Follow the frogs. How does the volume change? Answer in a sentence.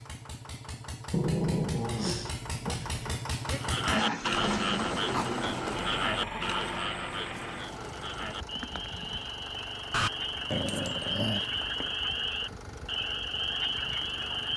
The loudness of the frogs goes down, then up.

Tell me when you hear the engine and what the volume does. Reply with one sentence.
The engine can be heard from 0.0 to 14.5 s, getting louder then quieter.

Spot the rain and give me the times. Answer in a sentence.
You can't hear the rain here.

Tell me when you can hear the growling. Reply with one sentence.
The growling can be heard from 1.1 to 3.2 s, from 5.1 to 6.8 s and from 9.9 to 11.9 s.